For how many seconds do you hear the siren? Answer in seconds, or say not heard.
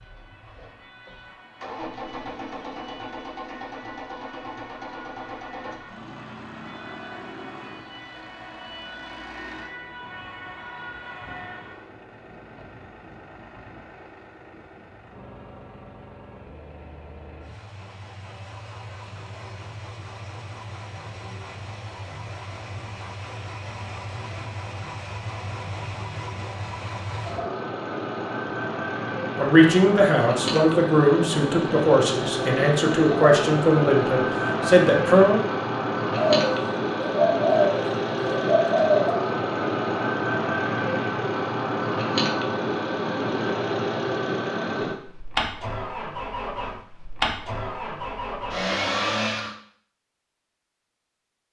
12 s.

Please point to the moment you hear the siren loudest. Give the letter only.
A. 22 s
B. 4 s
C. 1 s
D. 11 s
D.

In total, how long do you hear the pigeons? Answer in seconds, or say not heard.
3 s.